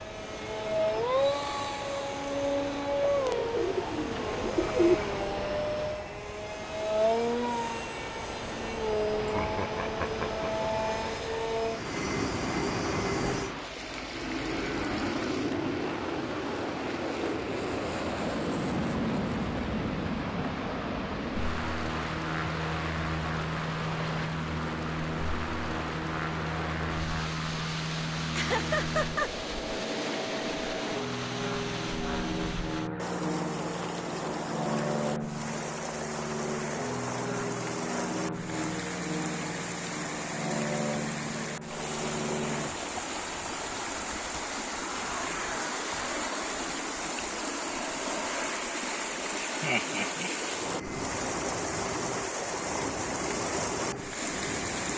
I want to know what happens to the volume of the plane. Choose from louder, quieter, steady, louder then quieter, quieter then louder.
quieter.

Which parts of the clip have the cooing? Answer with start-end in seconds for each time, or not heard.
3.2-5.0.